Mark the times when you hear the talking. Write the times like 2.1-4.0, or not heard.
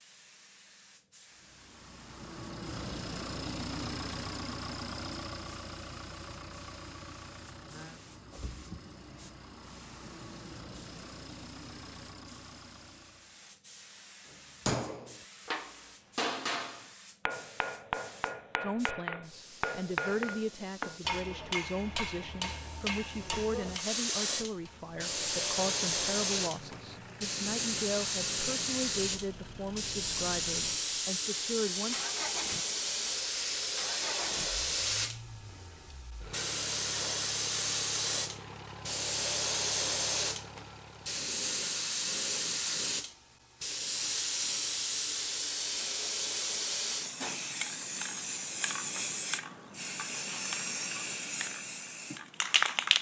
18.6-32.0.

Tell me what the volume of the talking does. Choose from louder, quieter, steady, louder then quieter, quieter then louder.
steady.